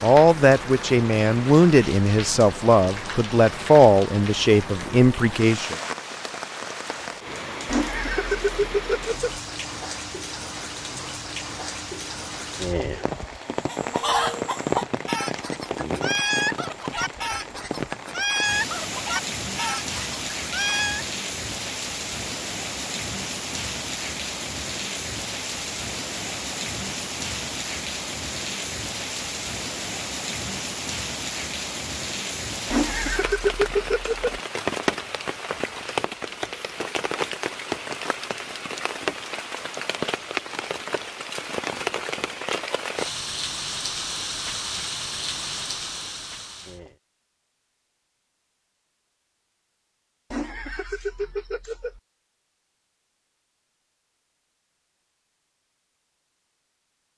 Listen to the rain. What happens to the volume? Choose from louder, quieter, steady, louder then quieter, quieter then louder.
steady.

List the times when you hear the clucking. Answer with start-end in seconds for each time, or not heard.
13.7-21.1.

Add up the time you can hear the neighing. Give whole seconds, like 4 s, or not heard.
5 s.